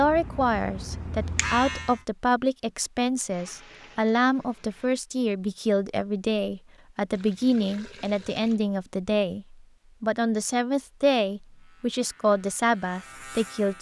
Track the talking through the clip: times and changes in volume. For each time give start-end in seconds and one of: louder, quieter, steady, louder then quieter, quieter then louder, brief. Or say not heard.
0.0-13.7 steady.